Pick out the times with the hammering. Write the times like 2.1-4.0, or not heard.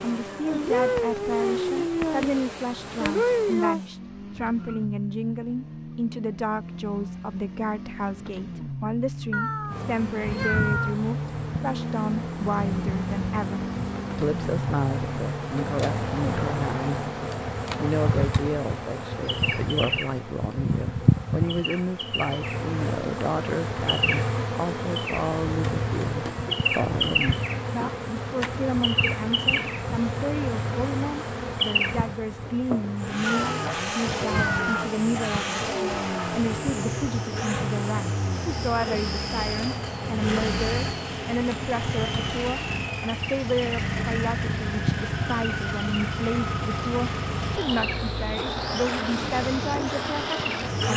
not heard.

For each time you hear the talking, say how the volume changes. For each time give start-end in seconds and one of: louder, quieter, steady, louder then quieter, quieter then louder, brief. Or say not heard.
0.0-17.1 steady
17.8-50.9 steady.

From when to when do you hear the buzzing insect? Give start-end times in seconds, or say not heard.
0.0-3.8, 9.7-50.8.